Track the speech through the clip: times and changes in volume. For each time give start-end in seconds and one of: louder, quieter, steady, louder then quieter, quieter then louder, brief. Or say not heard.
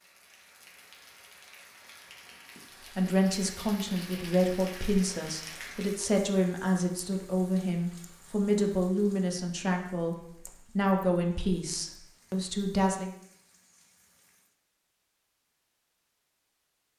3.0-13.1 steady.